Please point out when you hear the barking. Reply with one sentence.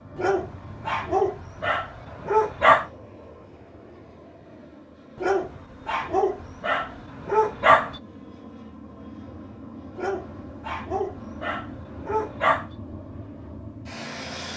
You can hear the barking from 0.1 to 2.9 s, from 5.2 to 8.0 s and from 9.9 to 12.7 s.